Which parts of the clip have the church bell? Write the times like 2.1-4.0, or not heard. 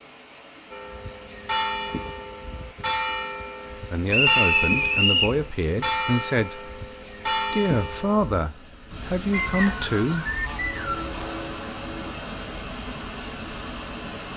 0.7-12.2.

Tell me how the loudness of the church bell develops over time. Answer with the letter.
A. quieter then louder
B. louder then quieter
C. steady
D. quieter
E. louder
D.